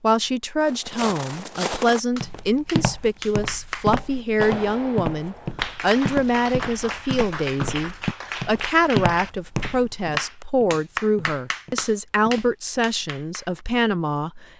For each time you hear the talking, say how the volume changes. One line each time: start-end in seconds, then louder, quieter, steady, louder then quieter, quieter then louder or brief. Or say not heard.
0.0-14.4 steady.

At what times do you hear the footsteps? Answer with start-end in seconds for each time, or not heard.
0.6-12.6.